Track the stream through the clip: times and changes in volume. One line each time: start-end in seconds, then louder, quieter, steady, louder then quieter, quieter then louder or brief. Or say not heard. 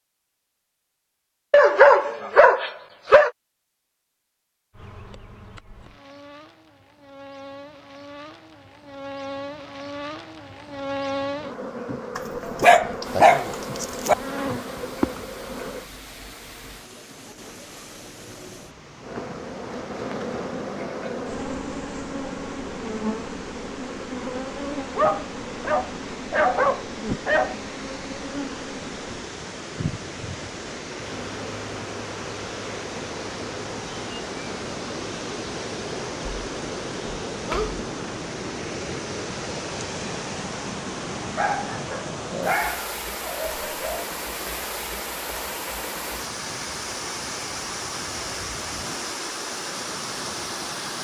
13.0-50.9 louder.